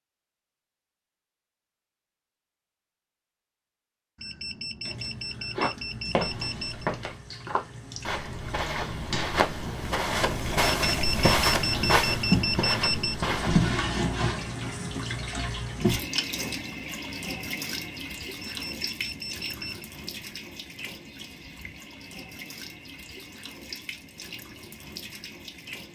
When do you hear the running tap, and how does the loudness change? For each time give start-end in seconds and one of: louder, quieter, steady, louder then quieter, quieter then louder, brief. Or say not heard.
4.8-25.9 louder then quieter.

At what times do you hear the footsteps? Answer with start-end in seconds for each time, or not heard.
5.5-13.7.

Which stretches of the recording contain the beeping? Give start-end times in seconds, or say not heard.
4.2-6.9, 10.6-13.2, 18.4-19.9.